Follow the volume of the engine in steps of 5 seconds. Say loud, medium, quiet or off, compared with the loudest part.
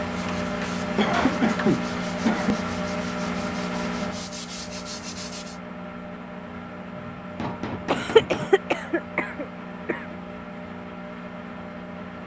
loud, medium, medium.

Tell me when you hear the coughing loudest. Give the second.
8 s.